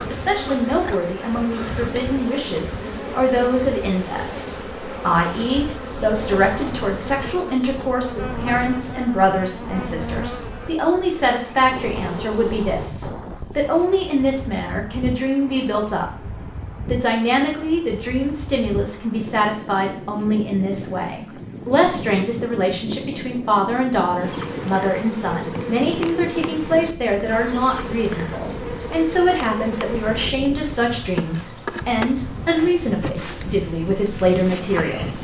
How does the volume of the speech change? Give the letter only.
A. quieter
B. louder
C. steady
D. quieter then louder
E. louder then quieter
C.